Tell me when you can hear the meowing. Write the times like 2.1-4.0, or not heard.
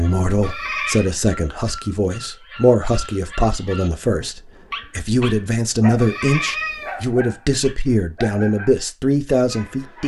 0.4-1.1, 6.0-7.0.